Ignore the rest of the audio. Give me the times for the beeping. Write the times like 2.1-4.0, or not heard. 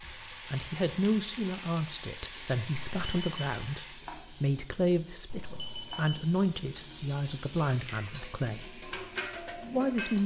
2.9-3.6, 5.2-6.2.